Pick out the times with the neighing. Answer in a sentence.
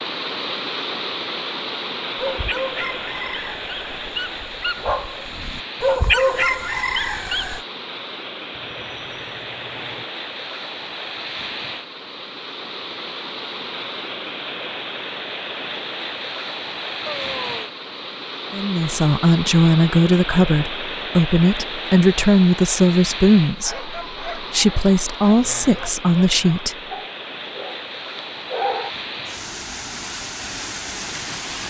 The neighing can be heard from 8.5 to 10.1 s and from 17.1 to 17.8 s.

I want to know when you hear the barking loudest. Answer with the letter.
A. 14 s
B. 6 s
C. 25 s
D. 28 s
B.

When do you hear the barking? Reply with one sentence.
The barking can be heard from 2.1 to 7.6 s and from 23.6 to 28.9 s.